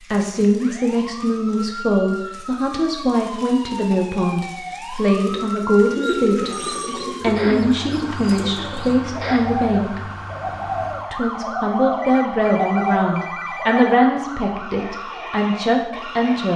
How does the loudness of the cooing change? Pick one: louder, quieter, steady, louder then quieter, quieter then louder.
quieter then louder.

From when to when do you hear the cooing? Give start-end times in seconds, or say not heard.
5.9-14.0.